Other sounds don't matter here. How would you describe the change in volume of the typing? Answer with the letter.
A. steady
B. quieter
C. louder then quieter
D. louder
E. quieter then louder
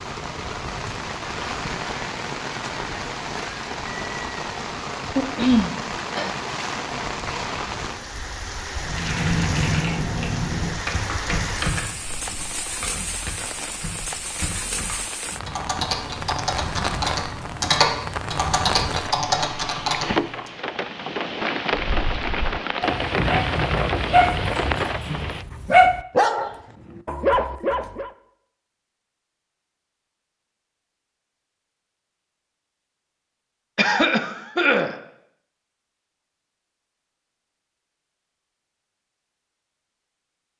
E.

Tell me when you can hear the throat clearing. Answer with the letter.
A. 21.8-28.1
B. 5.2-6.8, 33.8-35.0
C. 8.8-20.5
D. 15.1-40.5
B.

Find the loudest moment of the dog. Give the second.
26 s.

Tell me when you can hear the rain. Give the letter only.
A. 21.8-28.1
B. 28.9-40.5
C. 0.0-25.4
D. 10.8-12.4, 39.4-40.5
C.